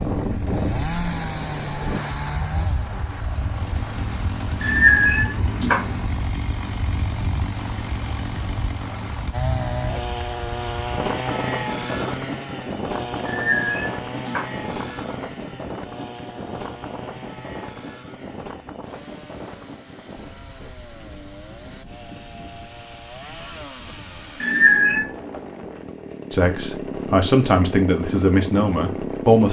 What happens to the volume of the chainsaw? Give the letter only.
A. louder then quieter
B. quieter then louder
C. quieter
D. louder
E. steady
B.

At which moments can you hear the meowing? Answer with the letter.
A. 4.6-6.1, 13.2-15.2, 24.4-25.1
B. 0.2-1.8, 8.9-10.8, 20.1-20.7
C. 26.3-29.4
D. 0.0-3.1
A.